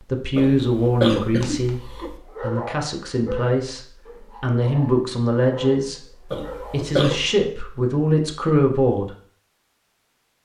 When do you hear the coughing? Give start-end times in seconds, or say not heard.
0.3-2.1, 6.3-7.3.